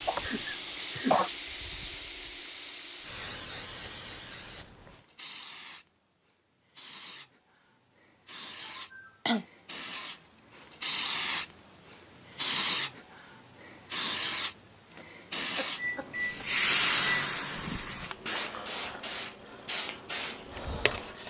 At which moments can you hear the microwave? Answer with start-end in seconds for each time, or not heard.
15.8-17.8.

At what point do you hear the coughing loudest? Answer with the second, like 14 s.
1 s.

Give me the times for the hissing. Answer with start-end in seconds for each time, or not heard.
0.0-21.2.